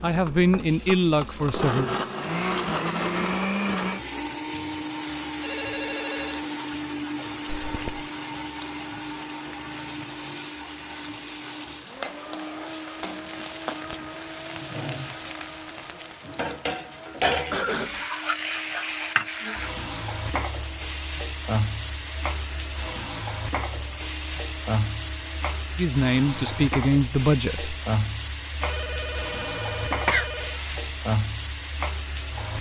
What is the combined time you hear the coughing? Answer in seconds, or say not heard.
2 s.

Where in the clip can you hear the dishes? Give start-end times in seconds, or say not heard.
not heard.